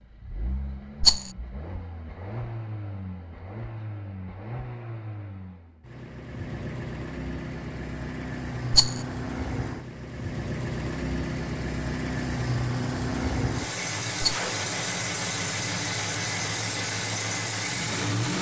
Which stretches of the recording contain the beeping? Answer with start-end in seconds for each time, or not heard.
not heard.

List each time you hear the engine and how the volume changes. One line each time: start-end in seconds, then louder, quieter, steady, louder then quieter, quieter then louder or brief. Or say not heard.
0.0-18.3 louder.